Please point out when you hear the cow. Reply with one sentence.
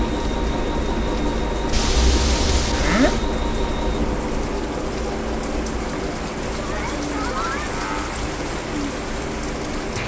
You can hear the cow from 1.7 to 3.2 s and from 6.5 to 8.2 s.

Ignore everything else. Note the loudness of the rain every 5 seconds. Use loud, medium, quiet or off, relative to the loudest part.
medium, loud.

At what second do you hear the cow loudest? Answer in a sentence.
The volume of the cow peaks at 3 seconds.